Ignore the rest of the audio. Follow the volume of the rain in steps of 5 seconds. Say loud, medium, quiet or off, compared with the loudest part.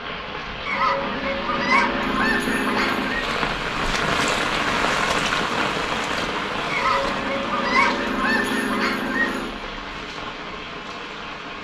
loud, loud, medium.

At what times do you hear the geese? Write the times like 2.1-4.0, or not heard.
0.7-3.2, 6.7-9.7.